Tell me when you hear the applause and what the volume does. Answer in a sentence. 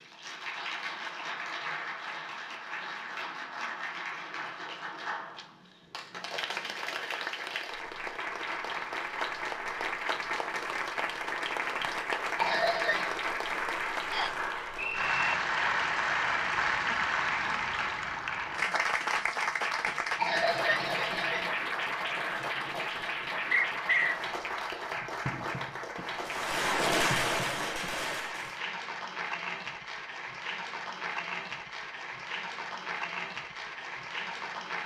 The applause can be heard from 0.0 to 34.8 s, getting louder then quieter.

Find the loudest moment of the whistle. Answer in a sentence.
The volume of the whistle peaks at 24 seconds.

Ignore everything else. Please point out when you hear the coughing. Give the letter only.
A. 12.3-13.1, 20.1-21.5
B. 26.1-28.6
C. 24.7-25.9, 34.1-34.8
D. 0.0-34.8
A.